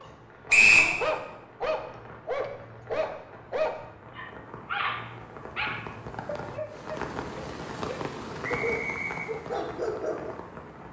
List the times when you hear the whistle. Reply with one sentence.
You can hear the whistle from 0.5 to 0.9 s and from 8.4 to 9.3 s.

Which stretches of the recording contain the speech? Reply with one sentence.
The speech can't be heard in this clip.